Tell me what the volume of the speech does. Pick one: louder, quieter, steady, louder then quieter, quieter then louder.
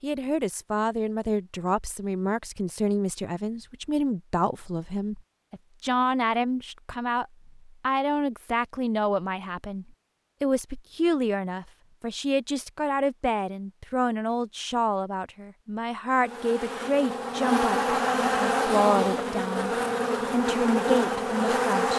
steady.